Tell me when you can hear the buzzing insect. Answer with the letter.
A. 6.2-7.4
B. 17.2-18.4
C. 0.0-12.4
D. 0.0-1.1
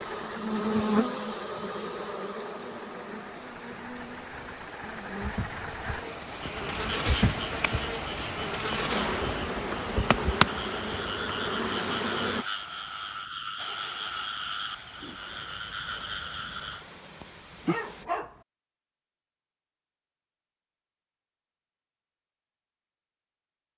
C.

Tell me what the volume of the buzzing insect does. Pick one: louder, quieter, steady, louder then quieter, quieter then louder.
quieter then louder.